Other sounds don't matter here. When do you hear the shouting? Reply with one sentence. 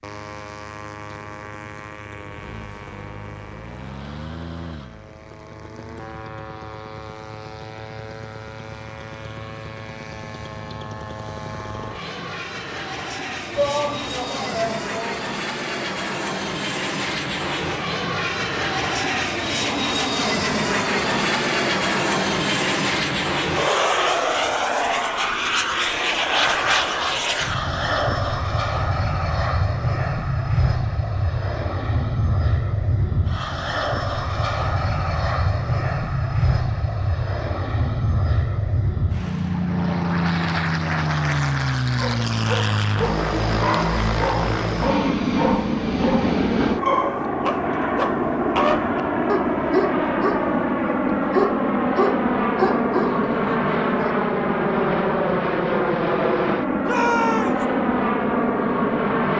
The shouting can be heard from 13.5 to 15.2 s and from 56.8 to 57.6 s.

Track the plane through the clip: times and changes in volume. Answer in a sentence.
You can hear the plane from 0.0 to 59.3 s, getting louder.